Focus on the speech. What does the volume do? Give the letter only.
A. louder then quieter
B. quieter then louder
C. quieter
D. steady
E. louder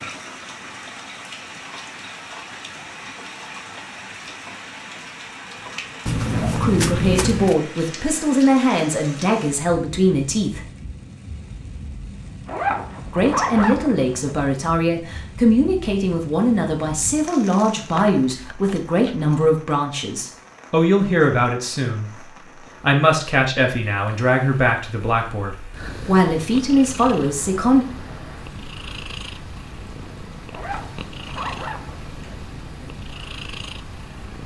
D.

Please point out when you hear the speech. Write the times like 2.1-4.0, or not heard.
6.6-10.7, 13.1-27.9.